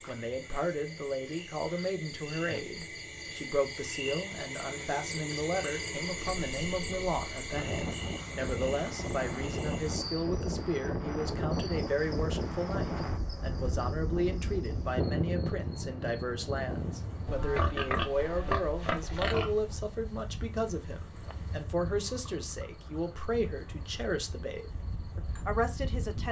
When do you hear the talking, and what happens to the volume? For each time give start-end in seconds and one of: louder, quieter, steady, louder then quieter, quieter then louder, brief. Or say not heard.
0.1-26.2 steady.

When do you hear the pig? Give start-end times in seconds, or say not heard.
17.2-19.8.